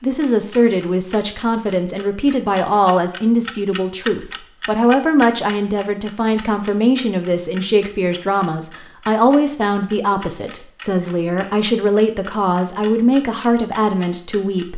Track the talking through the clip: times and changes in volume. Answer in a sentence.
You can hear the talking from 0.0 to 14.7 s, at a steady volume.